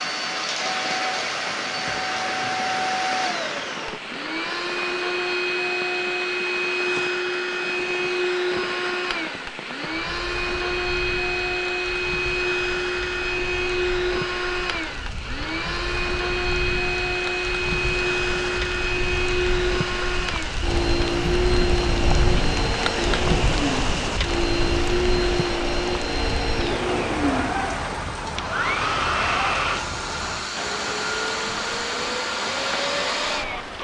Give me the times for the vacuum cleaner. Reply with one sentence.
The vacuum cleaner can be heard from 0.0 to 33.7 s.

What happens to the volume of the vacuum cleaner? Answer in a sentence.
The volume of the vacuum cleaner stays about the same.